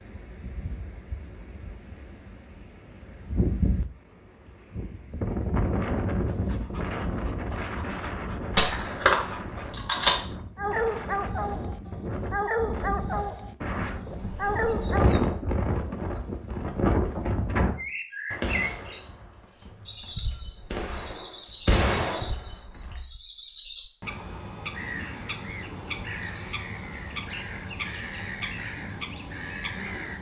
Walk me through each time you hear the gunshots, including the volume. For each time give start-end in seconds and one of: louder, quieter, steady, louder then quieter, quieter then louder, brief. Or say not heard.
8.4-10.2 brief
18.3-22.9 quieter then louder.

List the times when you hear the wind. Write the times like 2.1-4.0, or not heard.
0.0-17.8.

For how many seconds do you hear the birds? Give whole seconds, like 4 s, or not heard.
16 s.